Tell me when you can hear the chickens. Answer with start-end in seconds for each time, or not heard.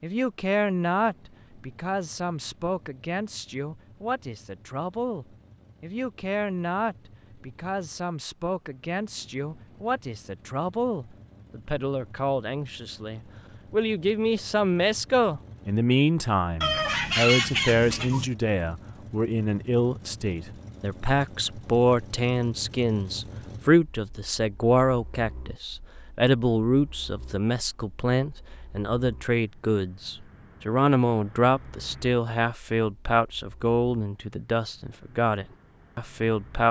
16.6-18.3.